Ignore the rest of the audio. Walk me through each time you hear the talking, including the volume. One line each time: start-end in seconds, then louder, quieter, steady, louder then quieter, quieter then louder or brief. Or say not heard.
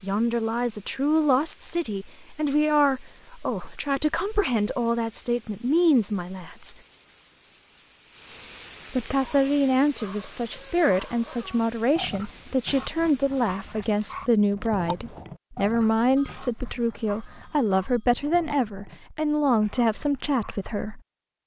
0.0-6.8 steady
8.9-21.0 steady.